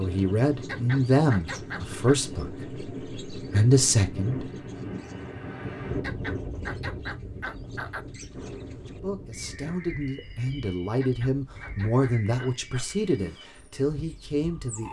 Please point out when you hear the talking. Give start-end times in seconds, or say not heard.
0.0-4.5, 8.9-14.8.